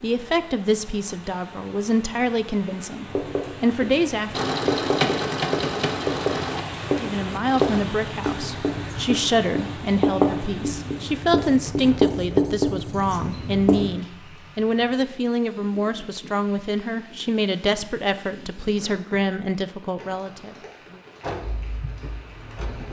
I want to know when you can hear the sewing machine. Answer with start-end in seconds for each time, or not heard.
4.3-7.8, 21.2-22.8.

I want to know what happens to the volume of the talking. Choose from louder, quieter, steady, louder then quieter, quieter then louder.
steady.